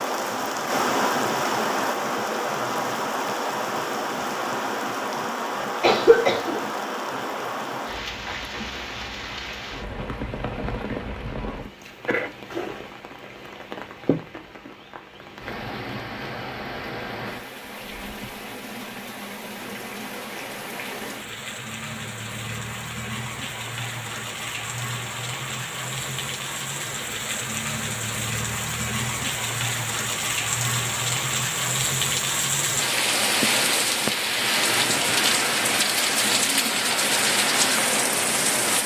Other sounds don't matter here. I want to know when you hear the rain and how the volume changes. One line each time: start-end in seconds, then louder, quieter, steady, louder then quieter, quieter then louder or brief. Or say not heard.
0.0-38.8 quieter then louder.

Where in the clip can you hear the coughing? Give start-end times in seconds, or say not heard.
5.6-6.7.